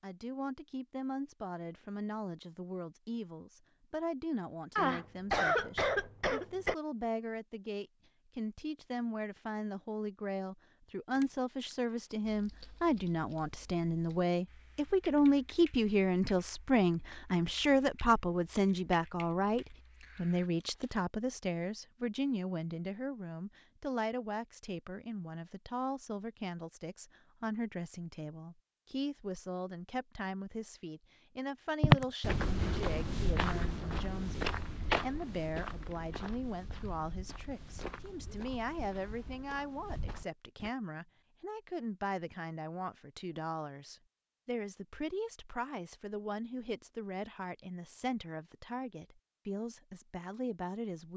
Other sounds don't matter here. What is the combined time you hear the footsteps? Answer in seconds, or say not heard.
9 s.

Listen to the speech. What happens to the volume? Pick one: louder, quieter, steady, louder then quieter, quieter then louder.
louder then quieter.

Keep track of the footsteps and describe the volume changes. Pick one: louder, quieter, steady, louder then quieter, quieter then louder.
quieter.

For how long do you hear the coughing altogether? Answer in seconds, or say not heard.
2 s.